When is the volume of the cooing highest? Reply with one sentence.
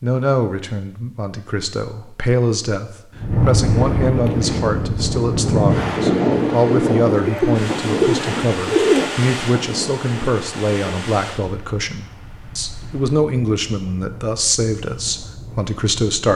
The volume of the cooing peaks at 9 seconds.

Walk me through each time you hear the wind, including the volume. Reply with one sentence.
You can hear the wind from 3.1 to 16.3 s, getting quieter.